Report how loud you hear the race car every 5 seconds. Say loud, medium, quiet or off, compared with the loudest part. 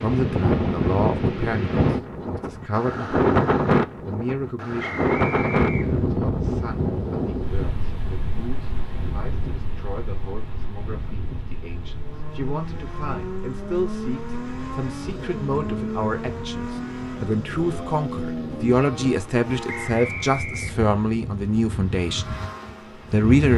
off, off, loud, loud, medium.